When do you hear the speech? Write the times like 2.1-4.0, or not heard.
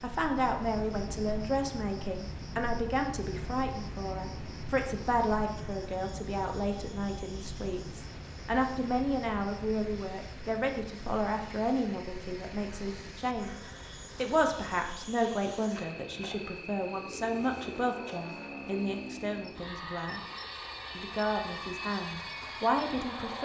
0.0-13.6, 14.2-20.2, 20.9-23.4.